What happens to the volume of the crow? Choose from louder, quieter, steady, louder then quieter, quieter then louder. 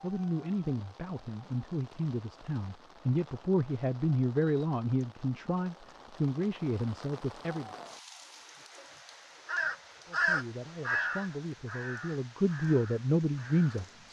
quieter.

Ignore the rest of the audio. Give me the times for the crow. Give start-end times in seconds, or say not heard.
9.4-13.8.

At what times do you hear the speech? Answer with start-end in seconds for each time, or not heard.
0.0-7.8, 10.1-14.0.